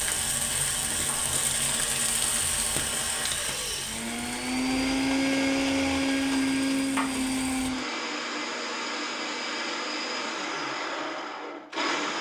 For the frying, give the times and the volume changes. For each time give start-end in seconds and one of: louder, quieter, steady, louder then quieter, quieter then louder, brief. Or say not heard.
0.0-7.7 quieter then louder.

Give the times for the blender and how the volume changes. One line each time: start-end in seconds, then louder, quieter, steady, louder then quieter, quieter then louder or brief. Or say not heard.
0.0-12.1 louder then quieter.